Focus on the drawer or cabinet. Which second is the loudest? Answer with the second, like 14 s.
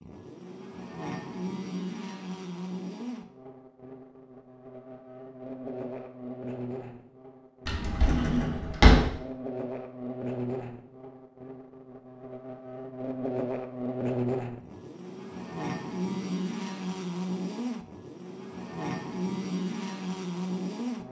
9 s.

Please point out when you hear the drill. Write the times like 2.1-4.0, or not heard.
not heard.